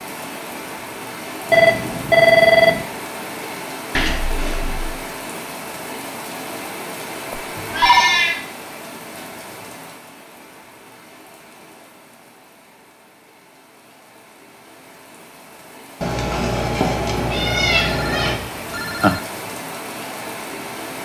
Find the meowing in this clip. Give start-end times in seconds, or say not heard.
3.9-5.0, 7.5-8.3, 16.0-18.4.